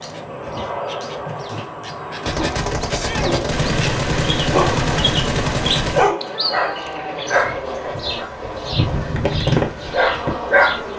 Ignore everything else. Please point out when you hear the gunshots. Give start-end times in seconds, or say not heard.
2.2-6.1.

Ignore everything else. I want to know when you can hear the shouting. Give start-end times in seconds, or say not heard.
2.9-3.4, 6.3-7.0.